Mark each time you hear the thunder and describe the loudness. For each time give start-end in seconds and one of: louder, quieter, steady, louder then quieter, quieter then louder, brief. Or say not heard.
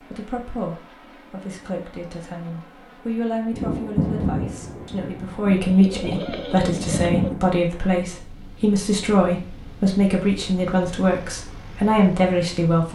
3.5-7.5 quieter then louder.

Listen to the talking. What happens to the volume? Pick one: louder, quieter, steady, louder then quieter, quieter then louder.
louder.